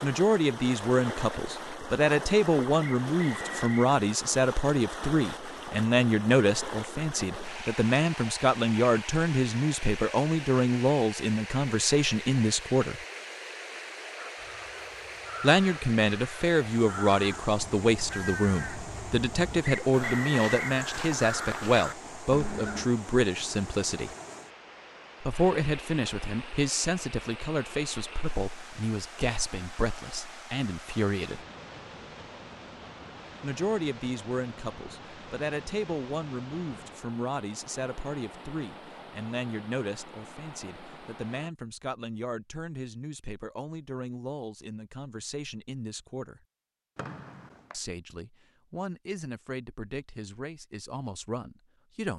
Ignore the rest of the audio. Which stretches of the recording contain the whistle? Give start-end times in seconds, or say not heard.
2.8-3.8, 19.6-20.8, 47.0-47.8.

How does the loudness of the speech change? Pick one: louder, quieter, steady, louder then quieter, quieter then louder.
quieter.